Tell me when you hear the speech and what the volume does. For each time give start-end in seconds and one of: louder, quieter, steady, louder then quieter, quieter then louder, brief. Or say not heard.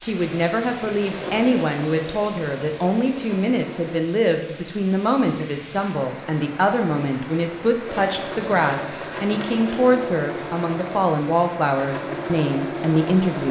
0.0-13.4 steady.